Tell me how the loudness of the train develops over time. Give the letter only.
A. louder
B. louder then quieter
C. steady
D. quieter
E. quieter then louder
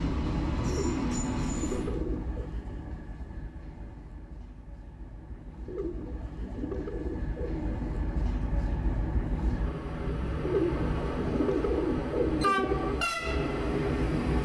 E.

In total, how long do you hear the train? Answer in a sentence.
The train can be heard for 14 seconds in total.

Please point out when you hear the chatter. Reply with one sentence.
The chatter can't be heard in this clip.